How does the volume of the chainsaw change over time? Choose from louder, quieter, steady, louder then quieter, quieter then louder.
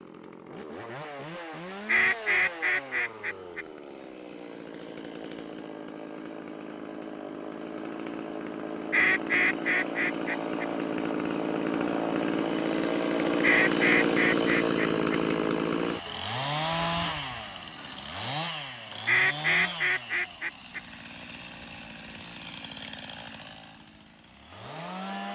louder then quieter.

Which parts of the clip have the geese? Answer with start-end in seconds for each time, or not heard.
1.9-3.6, 8.9-10.7, 13.4-15.2, 19.1-20.8.